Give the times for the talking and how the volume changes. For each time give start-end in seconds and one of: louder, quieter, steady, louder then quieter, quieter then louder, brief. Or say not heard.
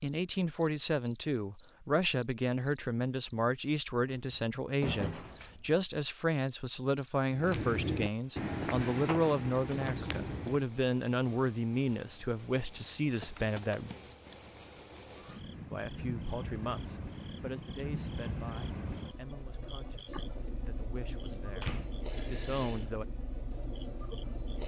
0.0-13.9 steady
15.7-23.1 quieter then louder.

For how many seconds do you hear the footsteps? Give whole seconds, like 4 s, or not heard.
3 s.